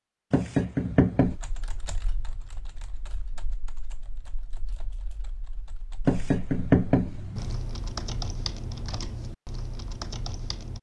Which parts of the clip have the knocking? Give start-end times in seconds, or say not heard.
0.3-1.4, 6.0-7.6.